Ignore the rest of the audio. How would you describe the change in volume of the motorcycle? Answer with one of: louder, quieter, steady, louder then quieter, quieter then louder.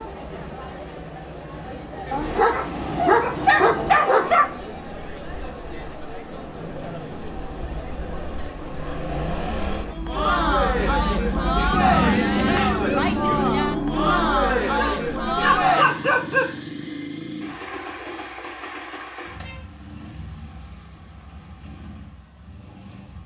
louder then quieter.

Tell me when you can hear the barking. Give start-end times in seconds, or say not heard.
2.1-4.6, 14.4-16.4.